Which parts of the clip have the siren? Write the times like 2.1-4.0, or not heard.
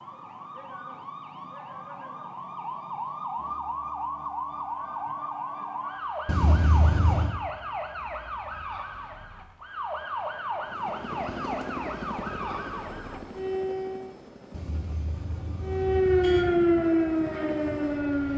0.0-14.2, 15.7-18.3.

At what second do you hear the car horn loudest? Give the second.
7 s.